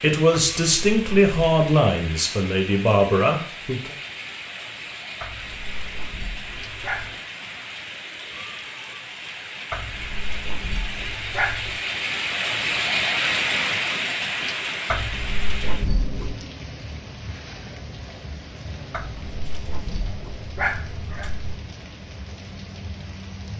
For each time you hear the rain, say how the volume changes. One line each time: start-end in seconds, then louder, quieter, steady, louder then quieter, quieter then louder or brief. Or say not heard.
0.0-23.5 louder then quieter.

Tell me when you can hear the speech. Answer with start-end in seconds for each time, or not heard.
0.0-4.0.